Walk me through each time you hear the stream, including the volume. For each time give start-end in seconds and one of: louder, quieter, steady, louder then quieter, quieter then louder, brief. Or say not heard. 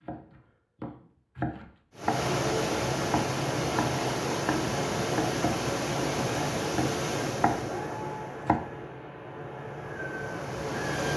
1.9-11.1 quieter.